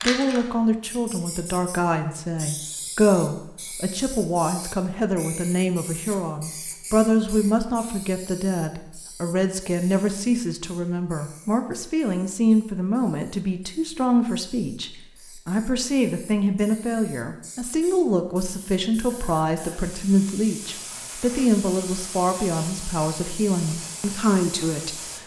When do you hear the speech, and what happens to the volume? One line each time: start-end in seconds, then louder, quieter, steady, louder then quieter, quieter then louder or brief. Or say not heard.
0.0-25.1 steady.